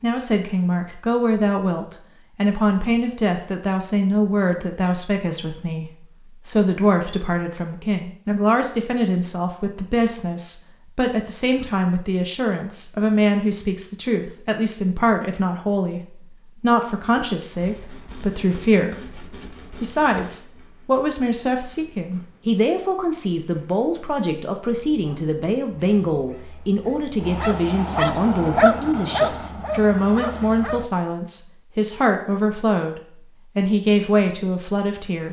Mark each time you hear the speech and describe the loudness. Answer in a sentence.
You can hear the speech from 0.0 to 16.0 s, at a steady volume; and from 16.6 to 35.2 s, at a steady volume.